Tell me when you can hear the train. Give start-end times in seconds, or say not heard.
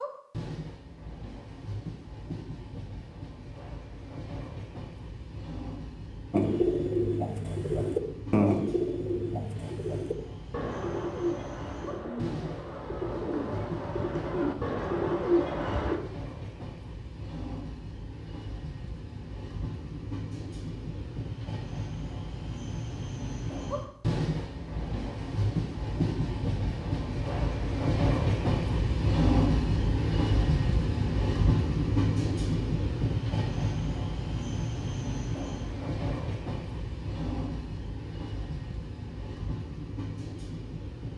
0.0-41.1.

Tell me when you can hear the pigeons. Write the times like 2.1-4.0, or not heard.
6.3-16.0.